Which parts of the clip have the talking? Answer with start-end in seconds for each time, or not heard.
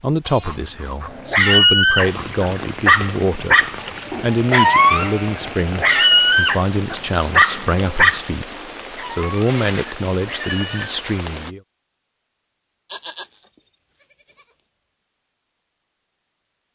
0.0-3.6, 4.2-11.6.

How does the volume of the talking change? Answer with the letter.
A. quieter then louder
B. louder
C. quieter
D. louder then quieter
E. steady
E.